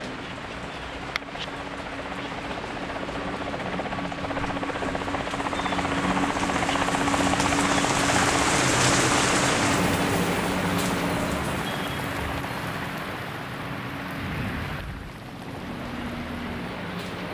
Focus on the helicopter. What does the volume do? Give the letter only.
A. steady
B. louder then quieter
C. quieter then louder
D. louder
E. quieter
B.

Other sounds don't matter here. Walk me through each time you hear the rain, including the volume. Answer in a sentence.
The rain can be heard from 0.0 to 17.2 s, getting louder then quieter.